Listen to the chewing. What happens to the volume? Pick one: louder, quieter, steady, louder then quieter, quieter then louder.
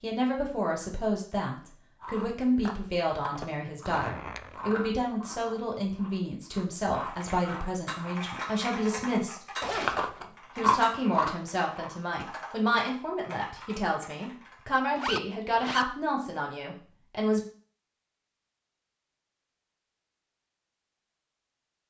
quieter then louder.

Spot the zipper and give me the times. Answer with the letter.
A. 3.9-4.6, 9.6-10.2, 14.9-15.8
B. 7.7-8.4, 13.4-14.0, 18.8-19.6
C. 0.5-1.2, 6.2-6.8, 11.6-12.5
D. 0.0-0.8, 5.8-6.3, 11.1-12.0
A.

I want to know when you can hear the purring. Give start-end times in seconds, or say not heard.
not heard.